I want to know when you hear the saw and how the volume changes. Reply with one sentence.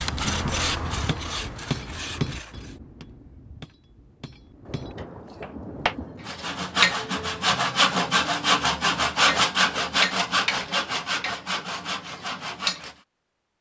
The saw can be heard briefly from 0.0 to 2.8 s; and from 6.2 to 12.9 s, getting quieter.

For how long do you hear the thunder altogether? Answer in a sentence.
The thunder can be heard for 2 seconds in total.